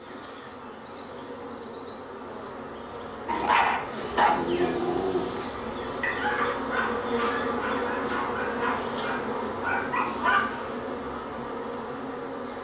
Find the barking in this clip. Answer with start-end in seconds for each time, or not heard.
3.2-10.7.